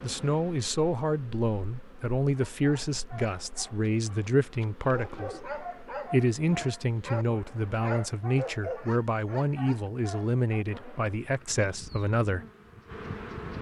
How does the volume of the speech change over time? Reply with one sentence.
The loudness of the speech stays about the same.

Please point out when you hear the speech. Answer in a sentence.
You can hear the speech from 0.0 to 12.4 s.